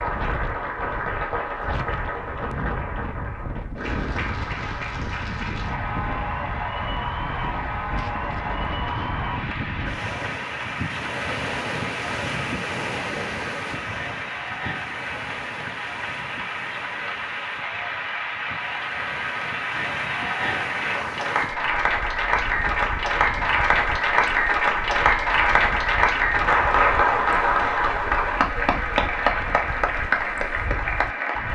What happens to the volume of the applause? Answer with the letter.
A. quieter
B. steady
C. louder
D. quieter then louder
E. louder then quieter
C.